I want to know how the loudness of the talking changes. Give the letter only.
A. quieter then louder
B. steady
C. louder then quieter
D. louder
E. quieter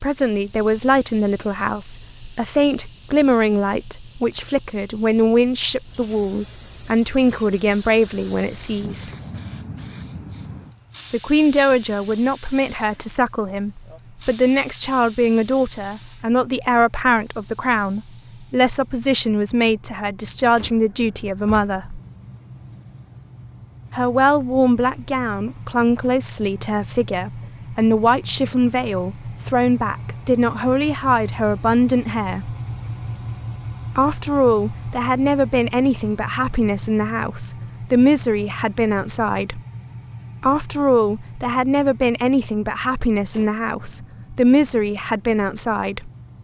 B.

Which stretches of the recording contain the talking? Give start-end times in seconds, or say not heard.
0.0-9.1, 11.1-22.0, 23.9-32.5, 34.0-39.6, 40.4-46.1.